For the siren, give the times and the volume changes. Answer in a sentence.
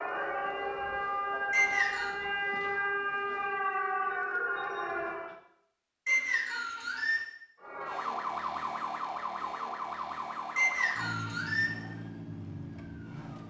The siren can be heard from 0.0 to 5.3 s, at a steady volume; and from 7.5 to 13.4 s, getting quieter.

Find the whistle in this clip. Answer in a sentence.
You can hear the whistle from 1.5 to 2.1 s, from 6.0 to 7.2 s and from 10.6 to 11.8 s.